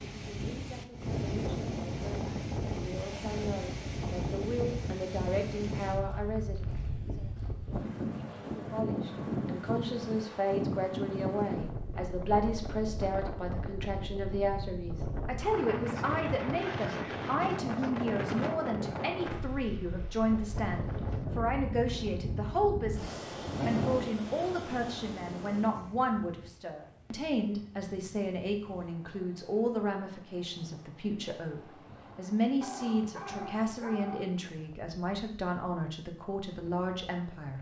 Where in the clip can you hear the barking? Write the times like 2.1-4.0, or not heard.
32.6-34.4.